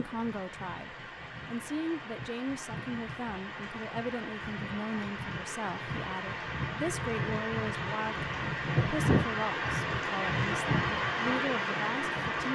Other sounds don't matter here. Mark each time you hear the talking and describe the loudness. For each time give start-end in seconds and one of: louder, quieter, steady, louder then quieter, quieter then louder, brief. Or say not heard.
0.0-12.4 steady.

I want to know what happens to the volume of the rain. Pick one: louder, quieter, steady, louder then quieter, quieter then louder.
louder.